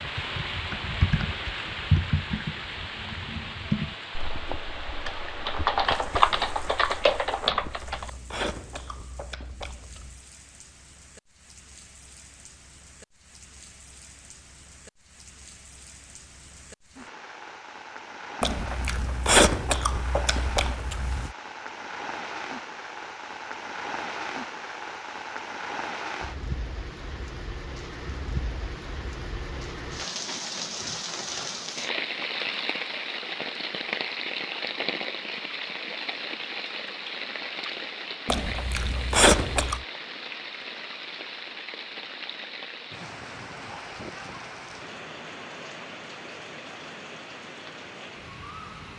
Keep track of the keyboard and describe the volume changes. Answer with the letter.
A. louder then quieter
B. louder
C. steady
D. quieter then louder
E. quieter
B.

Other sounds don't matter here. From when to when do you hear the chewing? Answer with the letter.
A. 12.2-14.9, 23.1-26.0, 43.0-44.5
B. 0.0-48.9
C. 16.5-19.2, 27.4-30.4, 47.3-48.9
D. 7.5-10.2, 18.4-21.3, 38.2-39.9
D.